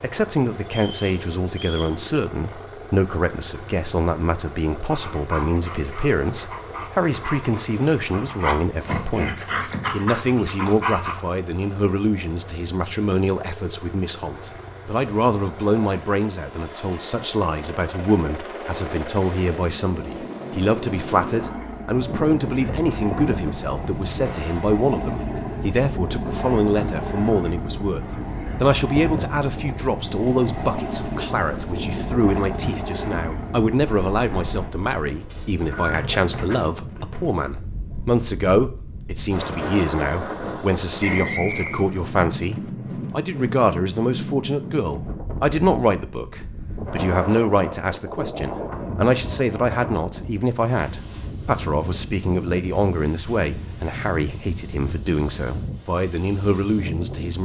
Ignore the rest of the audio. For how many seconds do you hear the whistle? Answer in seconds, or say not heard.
3 s.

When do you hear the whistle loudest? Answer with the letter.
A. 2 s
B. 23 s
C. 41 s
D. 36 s
C.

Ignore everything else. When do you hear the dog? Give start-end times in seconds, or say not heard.
4.8-11.2.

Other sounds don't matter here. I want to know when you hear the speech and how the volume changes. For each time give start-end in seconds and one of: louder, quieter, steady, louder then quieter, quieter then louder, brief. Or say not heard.
0.0-57.3 steady.